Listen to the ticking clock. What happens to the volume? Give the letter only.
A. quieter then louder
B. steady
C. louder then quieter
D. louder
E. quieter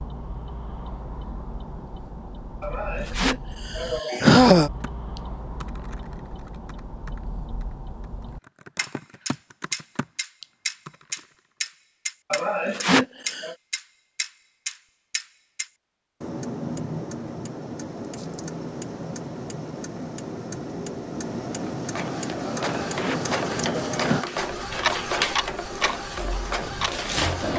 D.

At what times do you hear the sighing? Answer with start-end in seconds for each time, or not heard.
2.6-4.7, 12.3-13.6, 22.5-24.2.